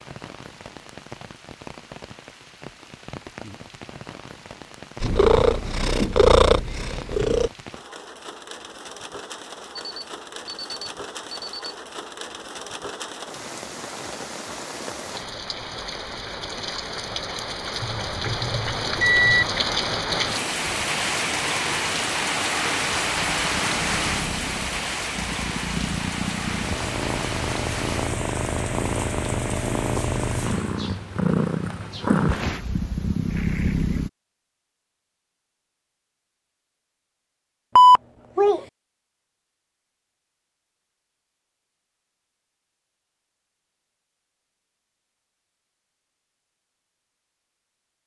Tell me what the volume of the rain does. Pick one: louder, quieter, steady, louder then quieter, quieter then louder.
louder then quieter.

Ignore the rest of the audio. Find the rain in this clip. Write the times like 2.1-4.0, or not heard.
0.0-30.8.